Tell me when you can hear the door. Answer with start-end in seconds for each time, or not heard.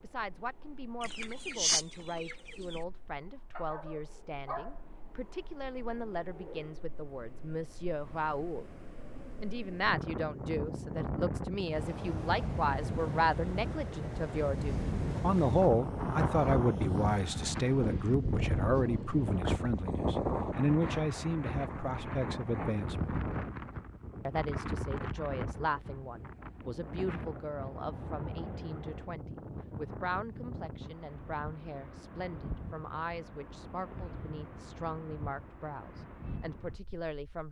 not heard.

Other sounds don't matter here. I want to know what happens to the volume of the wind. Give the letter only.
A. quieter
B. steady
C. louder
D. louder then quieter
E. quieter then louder
D.